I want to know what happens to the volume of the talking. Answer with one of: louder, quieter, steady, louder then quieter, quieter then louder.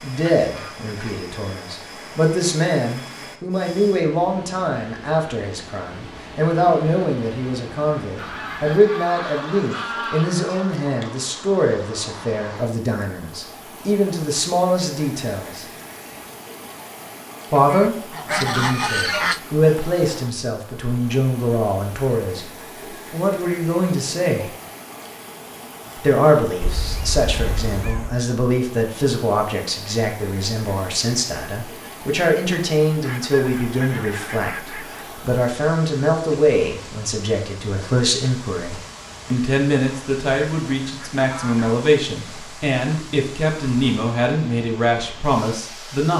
steady.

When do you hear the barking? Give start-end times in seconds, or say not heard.
not heard.